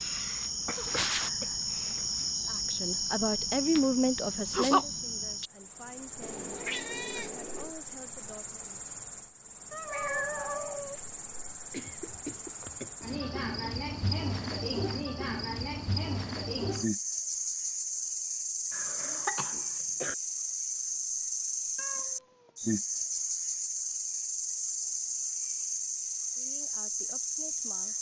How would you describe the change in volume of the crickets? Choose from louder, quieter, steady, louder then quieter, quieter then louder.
quieter then louder.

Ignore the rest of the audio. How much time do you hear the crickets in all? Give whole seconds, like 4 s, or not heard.
28 s.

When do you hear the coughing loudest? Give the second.
19 s.